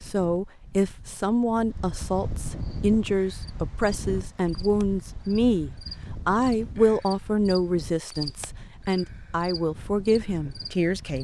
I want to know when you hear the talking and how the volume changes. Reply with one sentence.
The talking can be heard from 0.0 to 11.1 s, at a steady volume.